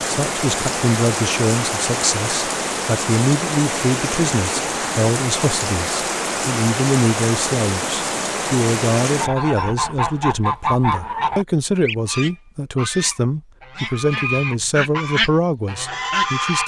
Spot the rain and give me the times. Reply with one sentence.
The rain can be heard from 0.0 to 9.3 s.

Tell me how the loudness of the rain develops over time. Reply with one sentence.
The loudness of the rain stays about the same.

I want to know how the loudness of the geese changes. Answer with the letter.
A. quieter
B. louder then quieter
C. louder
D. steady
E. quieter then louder
E.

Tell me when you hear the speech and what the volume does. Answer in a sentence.
You can hear the speech from 0.1 to 16.6 s, at a steady volume.